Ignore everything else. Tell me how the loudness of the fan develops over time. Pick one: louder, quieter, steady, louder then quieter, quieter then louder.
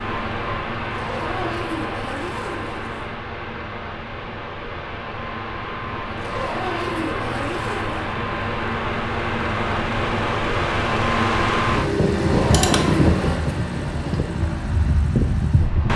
louder.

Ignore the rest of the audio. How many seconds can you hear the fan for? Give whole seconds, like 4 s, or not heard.
16 s.